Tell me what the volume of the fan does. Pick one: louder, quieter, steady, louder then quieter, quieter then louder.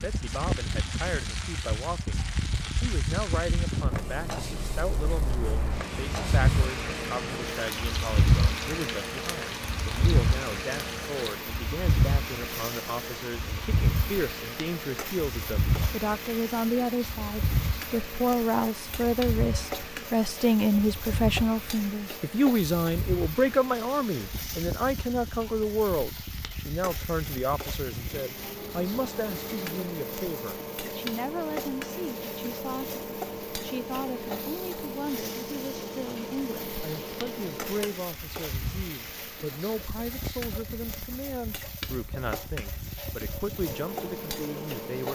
quieter.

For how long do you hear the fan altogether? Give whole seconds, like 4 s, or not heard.
45 s.